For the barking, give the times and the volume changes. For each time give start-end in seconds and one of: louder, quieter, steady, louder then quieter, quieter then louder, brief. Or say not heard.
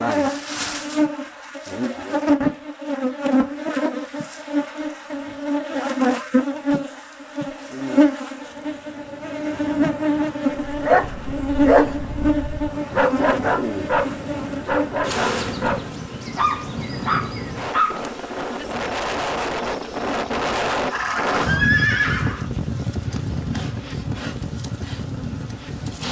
10.7-18.0 steady.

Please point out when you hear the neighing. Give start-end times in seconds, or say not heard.
20.9-22.4.